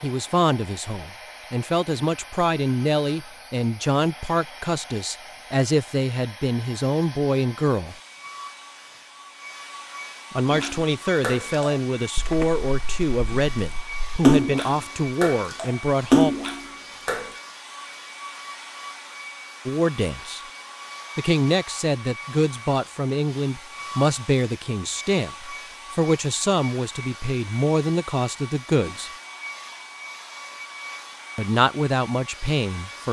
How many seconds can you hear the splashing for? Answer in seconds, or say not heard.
7 s.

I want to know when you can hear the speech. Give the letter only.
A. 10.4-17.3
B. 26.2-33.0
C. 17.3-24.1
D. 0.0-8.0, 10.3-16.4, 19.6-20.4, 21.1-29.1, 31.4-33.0
D.